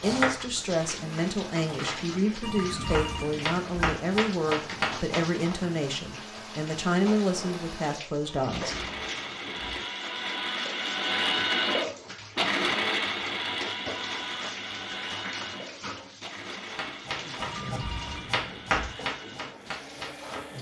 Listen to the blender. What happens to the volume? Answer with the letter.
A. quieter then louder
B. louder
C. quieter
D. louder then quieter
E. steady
D.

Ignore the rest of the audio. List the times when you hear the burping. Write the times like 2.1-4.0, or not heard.
not heard.